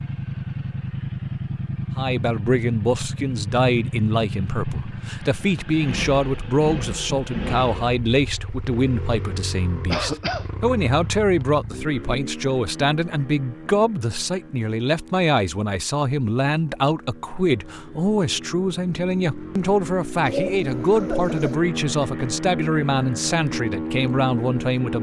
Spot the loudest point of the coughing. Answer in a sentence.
The volume of the coughing peaks at 10 seconds.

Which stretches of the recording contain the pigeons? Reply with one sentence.
You can hear the pigeons from 20.2 to 21.6 s.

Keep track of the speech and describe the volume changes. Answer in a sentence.
The volume of the speech stays about the same.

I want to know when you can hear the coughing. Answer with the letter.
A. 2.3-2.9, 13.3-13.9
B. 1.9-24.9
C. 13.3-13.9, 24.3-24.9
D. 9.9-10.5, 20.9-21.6
D.